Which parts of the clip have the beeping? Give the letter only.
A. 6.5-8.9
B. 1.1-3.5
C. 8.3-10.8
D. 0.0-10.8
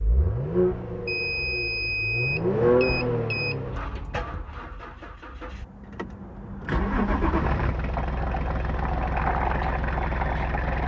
B.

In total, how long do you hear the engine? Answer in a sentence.
The engine can be heard for 11 seconds in total.